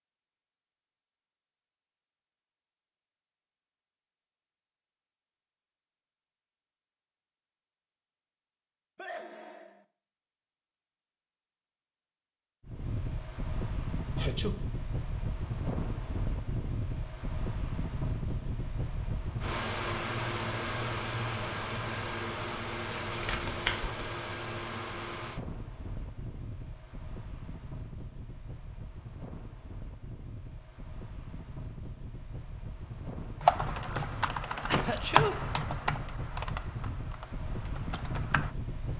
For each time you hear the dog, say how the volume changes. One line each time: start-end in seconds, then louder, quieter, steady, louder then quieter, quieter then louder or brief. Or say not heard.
not heard.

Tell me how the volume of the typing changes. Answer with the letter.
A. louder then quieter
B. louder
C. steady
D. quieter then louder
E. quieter
A.